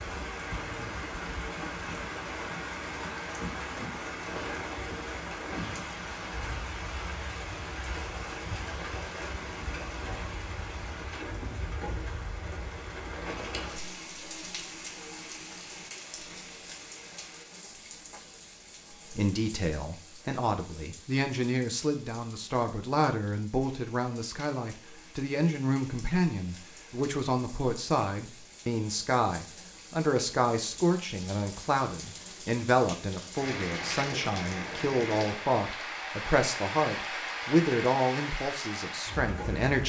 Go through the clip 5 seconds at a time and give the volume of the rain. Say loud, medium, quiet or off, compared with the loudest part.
loud, loud, loud, medium, quiet, quiet, loud, loud.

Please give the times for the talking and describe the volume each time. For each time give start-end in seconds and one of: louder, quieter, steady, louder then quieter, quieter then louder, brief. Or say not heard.
18.9-39.8 steady.